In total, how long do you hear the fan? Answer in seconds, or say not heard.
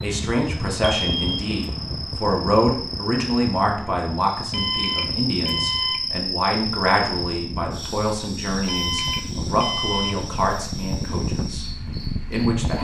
13 s.